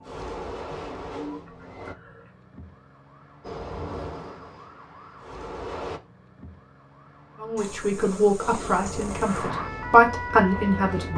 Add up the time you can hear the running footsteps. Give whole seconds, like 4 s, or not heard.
not heard.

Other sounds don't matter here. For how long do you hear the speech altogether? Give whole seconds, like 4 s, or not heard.
4 s.